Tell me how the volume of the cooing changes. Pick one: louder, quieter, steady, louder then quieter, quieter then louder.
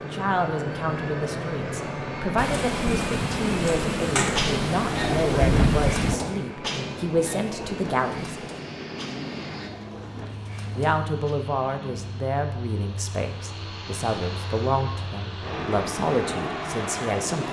quieter.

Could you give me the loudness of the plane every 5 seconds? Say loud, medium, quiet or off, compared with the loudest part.
loud, medium, medium, loud.